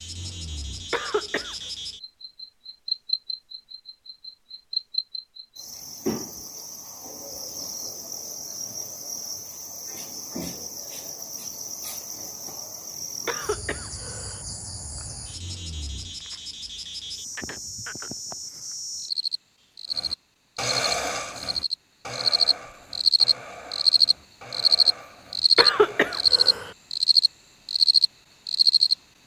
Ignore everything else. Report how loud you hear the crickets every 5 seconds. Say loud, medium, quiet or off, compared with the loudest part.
quiet, quiet, quiet, quiet, loud, loud.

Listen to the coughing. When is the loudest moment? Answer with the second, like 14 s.
26 s.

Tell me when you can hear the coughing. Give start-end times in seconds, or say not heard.
0.9-1.6, 13.2-14.4, 25.6-26.7.